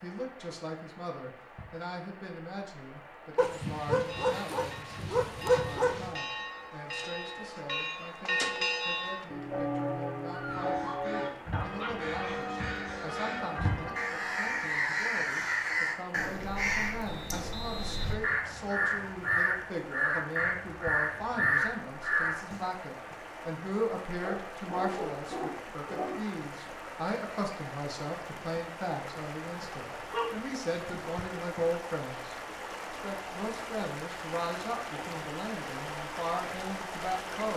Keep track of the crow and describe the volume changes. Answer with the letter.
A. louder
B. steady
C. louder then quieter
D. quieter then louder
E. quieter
A.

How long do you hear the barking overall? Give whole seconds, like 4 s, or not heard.
8 s.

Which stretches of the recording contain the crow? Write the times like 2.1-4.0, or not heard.
10.4-22.6.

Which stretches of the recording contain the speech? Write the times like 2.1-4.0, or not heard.
0.0-37.5.